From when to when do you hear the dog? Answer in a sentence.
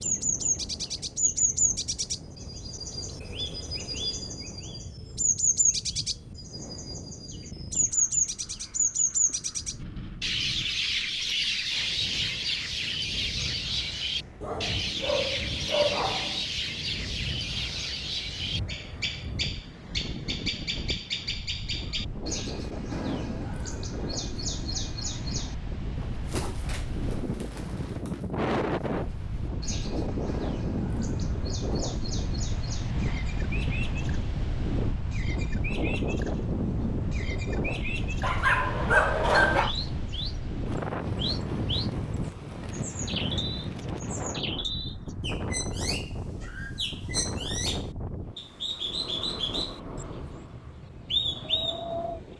You can hear the dog from 14.4 to 16.4 s and from 38.2 to 39.7 s.